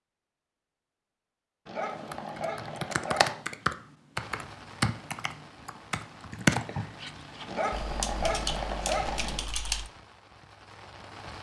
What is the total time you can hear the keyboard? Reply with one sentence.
The keyboard can be heard for 8 seconds in total.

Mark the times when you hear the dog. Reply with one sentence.
The dog can be heard from 1.6 to 3.4 s and from 7.5 to 9.4 s.